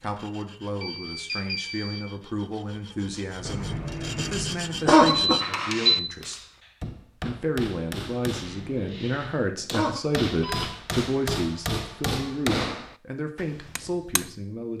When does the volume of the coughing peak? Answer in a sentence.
The volume of the coughing peaks at 5 seconds.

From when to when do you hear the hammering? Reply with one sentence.
The hammering can be heard from 5.4 to 14.3 s.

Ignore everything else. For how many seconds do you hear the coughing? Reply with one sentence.
You can hear the coughing for 4 seconds altogether.